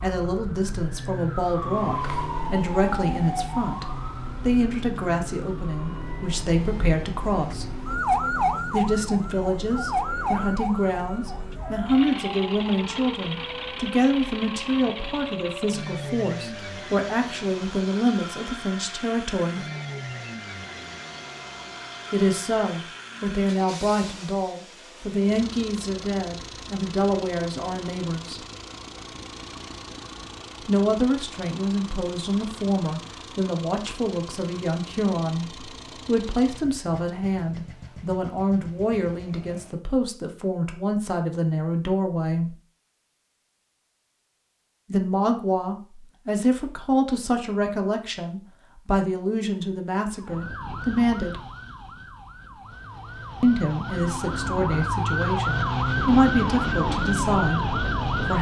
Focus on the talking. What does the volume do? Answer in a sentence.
The volume of the talking stays about the same.